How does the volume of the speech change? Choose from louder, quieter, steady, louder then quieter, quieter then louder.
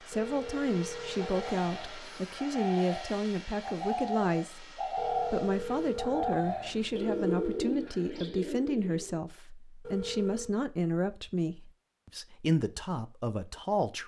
steady.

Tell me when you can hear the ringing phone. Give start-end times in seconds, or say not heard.
0.1-2.0, 5.0-7.7, 9.8-10.6.